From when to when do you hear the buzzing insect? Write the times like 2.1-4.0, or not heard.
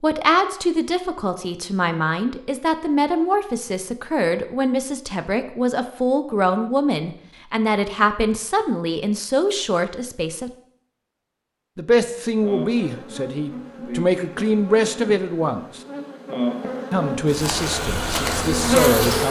12.2-19.2.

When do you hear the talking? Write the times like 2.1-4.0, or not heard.
0.0-10.5, 11.8-15.8, 16.9-19.2.